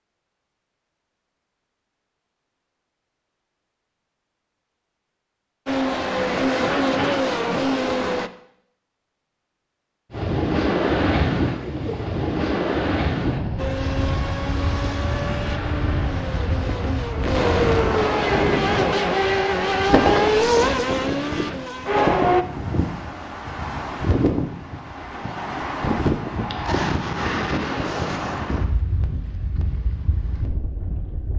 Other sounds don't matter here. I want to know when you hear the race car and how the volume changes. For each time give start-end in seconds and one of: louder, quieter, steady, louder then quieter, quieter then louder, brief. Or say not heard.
5.7-8.3 brief
13.6-22.4 louder.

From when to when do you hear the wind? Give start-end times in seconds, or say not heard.
10.1-31.3.